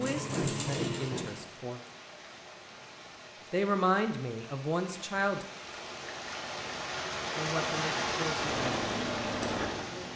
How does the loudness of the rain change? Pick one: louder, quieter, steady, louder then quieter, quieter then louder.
louder.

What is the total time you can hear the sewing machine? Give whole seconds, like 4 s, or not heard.
3 s.